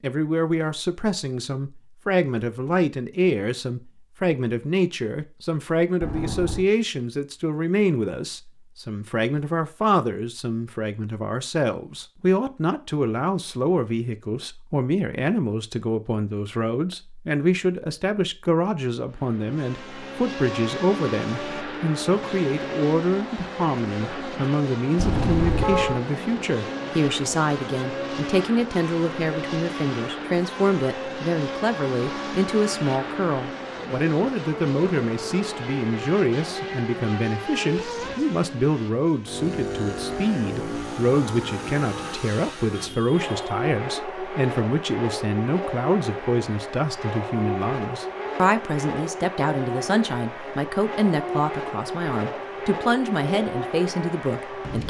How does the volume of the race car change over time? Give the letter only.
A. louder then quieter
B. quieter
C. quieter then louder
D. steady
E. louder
D.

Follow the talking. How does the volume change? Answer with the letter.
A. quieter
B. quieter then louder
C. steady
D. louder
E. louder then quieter
C.